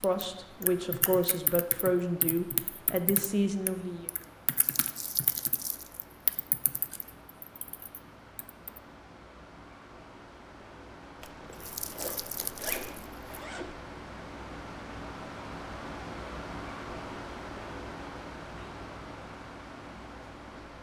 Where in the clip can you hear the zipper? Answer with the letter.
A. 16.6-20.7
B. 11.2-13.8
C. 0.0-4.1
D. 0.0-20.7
B.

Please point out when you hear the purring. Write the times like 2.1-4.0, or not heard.
not heard.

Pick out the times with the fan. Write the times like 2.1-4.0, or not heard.
0.0-20.7.